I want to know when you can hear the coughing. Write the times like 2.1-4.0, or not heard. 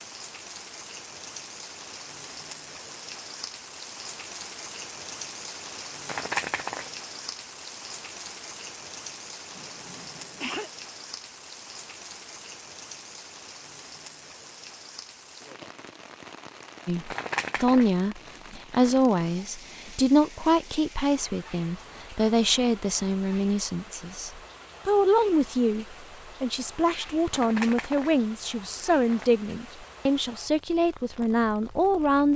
9.6-10.7.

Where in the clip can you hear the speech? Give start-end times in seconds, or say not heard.
16.9-32.3.